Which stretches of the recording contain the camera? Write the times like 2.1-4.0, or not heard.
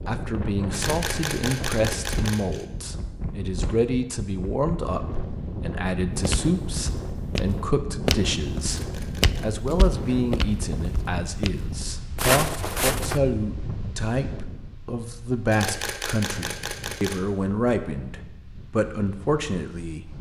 0.7-2.6, 8.6-9.5, 15.5-17.2.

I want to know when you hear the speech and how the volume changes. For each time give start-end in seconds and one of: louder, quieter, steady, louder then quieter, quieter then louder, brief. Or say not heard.
0.1-20.1 steady.